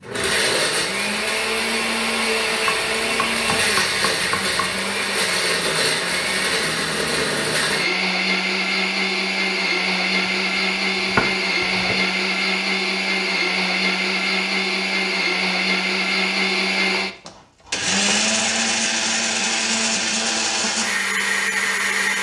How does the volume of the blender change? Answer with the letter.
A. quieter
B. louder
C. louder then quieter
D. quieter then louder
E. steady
E.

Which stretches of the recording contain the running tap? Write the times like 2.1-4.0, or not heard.
not heard.